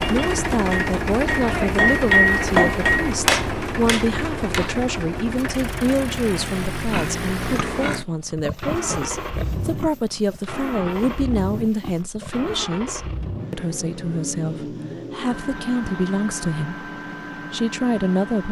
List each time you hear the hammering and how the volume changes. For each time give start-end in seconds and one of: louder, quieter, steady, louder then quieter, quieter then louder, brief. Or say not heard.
0.0-4.8 louder then quieter.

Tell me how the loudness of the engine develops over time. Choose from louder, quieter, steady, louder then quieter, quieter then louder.
quieter.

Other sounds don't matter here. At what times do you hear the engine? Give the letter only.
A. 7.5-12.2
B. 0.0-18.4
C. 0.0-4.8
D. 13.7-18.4
B.